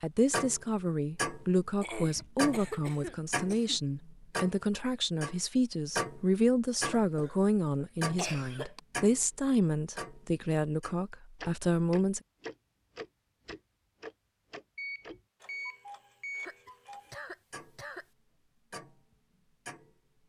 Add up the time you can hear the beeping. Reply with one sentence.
You can hear the beeping for 2 seconds altogether.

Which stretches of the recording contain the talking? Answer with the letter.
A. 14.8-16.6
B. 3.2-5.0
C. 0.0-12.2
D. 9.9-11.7
C.